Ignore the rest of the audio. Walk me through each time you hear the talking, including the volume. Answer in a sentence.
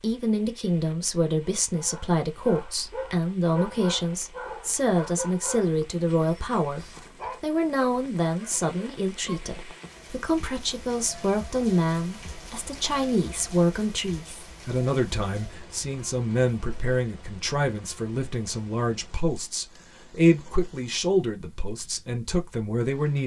You can hear the talking from 0.0 to 23.2 s, at a steady volume.